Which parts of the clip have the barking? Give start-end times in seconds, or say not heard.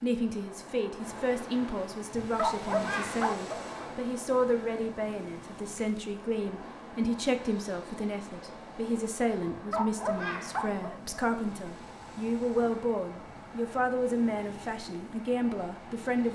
2.1-3.6, 9.4-11.2.